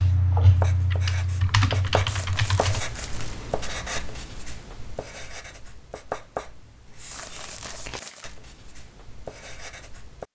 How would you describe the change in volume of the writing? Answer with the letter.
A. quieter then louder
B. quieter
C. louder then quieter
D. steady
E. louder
B.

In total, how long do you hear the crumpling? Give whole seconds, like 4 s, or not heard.
3 s.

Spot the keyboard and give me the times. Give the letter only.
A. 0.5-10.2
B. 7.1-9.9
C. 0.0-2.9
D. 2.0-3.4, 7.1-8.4
C.